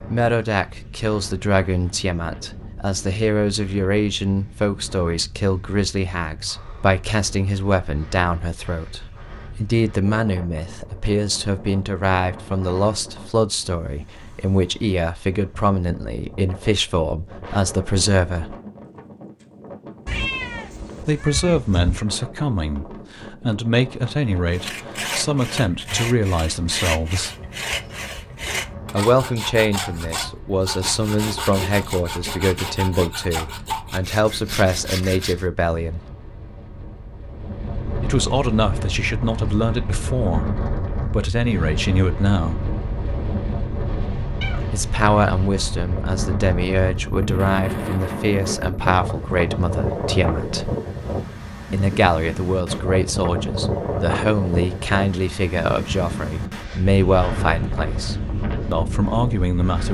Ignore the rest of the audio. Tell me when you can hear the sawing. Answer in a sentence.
The sawing can be heard from 24.4 to 35.5 s.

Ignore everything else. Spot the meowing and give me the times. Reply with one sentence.
The meowing can be heard from 20.1 to 22.1 s and from 44.4 to 45.5 s.